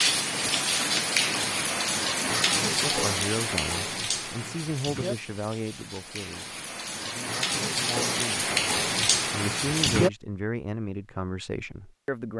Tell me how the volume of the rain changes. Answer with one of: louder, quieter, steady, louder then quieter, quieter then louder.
quieter then louder.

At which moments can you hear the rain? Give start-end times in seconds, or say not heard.
0.0-10.1.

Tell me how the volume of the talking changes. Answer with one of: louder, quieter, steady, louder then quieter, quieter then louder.
quieter then louder.